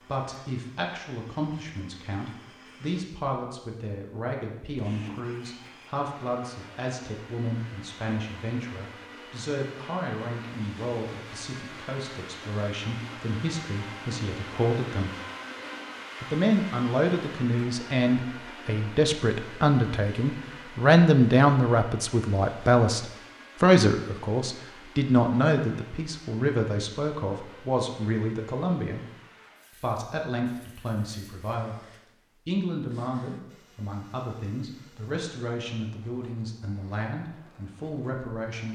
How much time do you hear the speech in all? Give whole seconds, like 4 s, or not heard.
36 s.